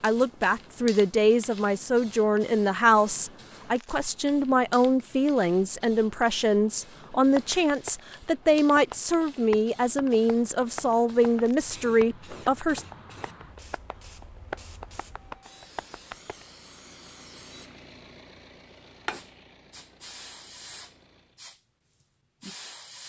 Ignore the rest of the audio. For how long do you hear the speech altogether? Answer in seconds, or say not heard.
13 s.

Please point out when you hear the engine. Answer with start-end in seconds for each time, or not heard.
15.2-21.4.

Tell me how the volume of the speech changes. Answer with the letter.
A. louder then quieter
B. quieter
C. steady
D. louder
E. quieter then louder
C.